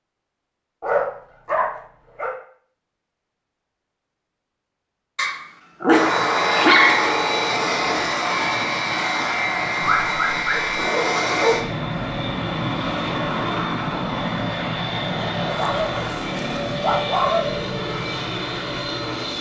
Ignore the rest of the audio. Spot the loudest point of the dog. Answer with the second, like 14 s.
7 s.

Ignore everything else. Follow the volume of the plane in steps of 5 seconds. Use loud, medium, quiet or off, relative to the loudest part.
off, loud, loud, medium.